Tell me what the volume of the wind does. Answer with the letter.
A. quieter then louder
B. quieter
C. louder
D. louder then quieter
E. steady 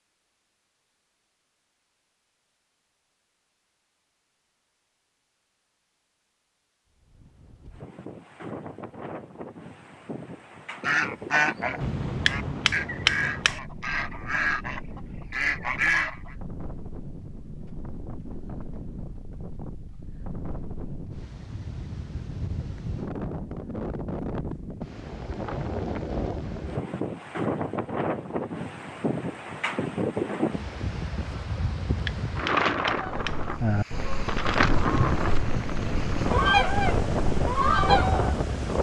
C.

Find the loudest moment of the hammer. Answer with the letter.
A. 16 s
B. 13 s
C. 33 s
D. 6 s
B.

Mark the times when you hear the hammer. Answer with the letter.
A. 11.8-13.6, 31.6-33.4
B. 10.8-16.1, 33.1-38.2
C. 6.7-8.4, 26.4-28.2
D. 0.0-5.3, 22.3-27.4
A.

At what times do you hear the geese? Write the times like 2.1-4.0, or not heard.
10.8-16.1, 33.1-38.2.